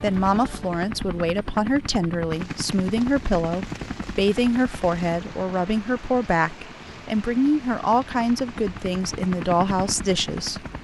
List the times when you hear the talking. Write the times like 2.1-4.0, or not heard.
0.0-10.7.